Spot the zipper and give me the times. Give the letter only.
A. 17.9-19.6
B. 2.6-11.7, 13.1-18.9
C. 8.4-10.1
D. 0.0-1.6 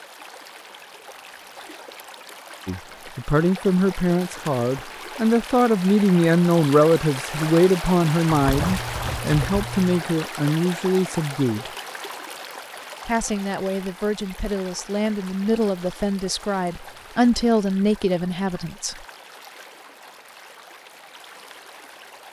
C.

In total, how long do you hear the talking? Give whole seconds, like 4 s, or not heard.
15 s.